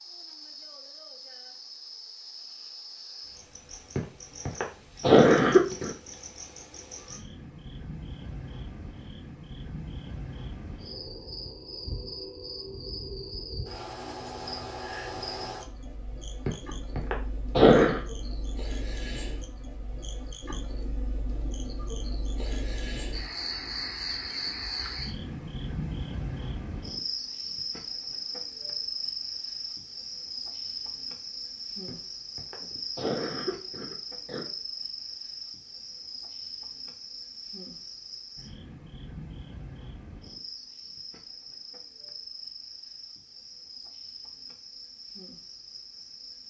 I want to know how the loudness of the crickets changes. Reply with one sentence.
The loudness of the crickets goes up, then down.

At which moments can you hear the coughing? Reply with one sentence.
You can hear the coughing from 4.0 to 5.9 s, from 16.4 to 18.0 s and from 31.9 to 34.5 s.